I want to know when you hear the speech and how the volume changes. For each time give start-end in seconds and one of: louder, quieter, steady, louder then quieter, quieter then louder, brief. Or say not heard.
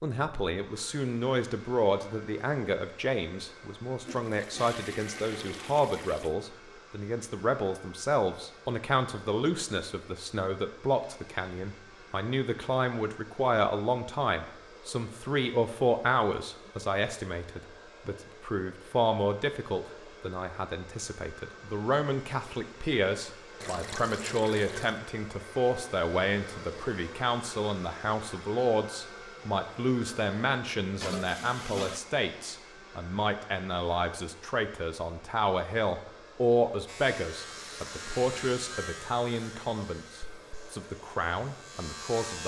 0.0-42.4 steady.